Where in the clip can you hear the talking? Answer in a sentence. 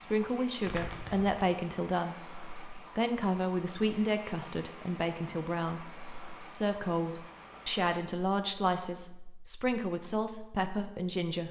You can hear the talking from 0.0 to 11.4 s.